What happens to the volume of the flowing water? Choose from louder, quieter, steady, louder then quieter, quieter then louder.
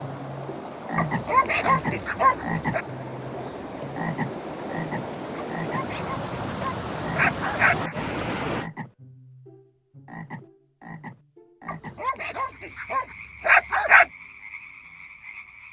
louder.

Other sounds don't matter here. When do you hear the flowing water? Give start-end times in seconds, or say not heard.
0.0-8.7.